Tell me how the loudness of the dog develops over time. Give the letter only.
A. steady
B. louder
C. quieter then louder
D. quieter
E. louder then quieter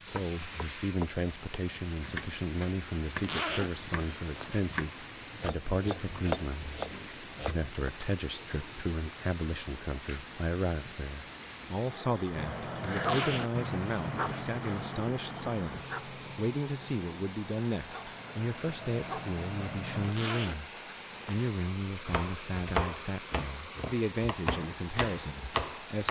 C.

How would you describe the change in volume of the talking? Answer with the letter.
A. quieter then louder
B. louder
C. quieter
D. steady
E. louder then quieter
D.